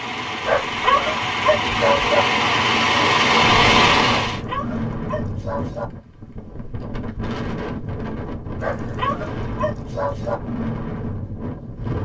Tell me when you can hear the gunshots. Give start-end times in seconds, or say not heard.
not heard.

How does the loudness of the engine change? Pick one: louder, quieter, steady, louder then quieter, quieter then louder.
louder.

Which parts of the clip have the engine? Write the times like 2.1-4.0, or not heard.
0.0-4.4.